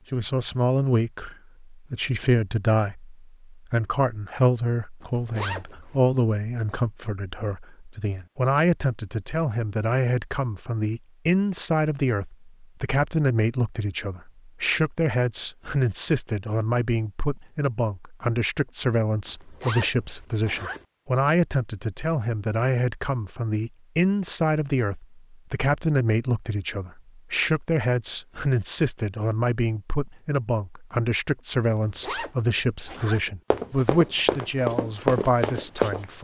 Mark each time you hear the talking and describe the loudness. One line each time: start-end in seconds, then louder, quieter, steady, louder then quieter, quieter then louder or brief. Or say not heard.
0.1-36.1 steady.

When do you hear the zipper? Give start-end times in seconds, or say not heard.
5.0-6.0, 19.2-20.9, 31.6-33.3.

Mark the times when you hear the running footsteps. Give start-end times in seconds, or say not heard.
33.0-36.1.